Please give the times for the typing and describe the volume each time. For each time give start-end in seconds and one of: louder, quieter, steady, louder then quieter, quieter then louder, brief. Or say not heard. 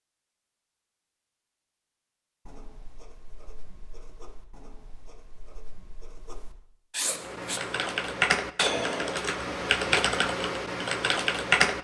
7.1-11.7 steady.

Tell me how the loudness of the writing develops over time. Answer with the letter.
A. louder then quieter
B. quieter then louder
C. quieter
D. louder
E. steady
D.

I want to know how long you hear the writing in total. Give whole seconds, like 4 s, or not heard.
5 s.